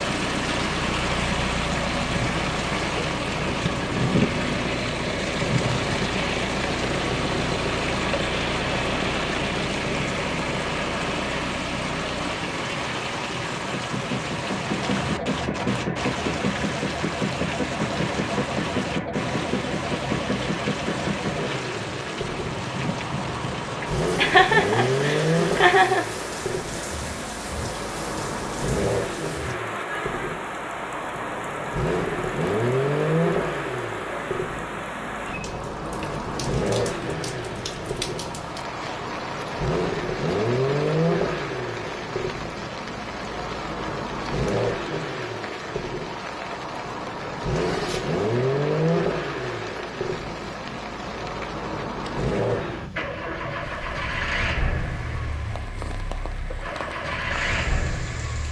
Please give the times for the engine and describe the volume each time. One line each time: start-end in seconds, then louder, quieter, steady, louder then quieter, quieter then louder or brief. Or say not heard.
0.0-58.4 steady.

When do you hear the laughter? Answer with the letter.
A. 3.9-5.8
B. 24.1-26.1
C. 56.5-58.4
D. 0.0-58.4
B.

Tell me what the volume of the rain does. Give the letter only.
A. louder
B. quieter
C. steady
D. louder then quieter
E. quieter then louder
B.